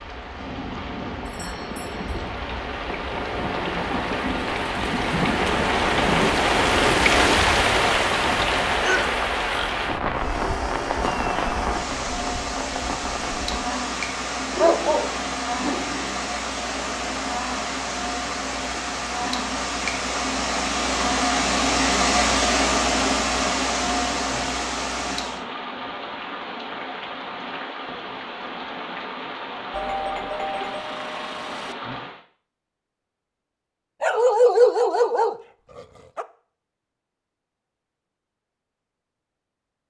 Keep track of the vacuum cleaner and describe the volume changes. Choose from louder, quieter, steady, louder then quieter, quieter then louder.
louder.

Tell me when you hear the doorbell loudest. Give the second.
30 s.